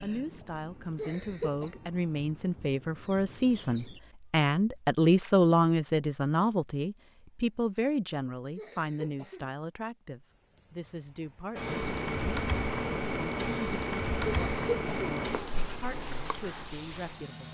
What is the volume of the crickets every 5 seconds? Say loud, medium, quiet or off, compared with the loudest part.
quiet, quiet, loud, loud.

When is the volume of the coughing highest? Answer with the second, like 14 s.
15 s.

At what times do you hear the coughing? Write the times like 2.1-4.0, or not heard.
0.9-1.8, 8.6-9.5, 14.2-15.2.